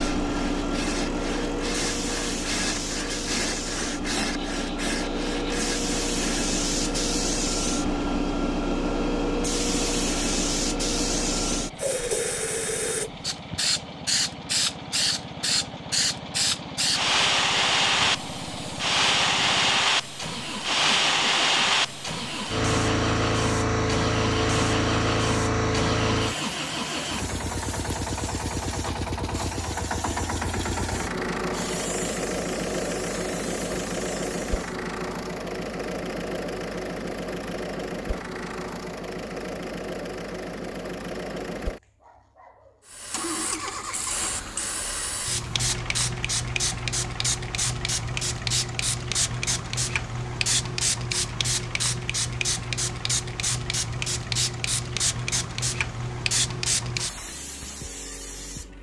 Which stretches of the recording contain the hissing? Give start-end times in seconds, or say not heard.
0.0-34.8, 42.9-58.6.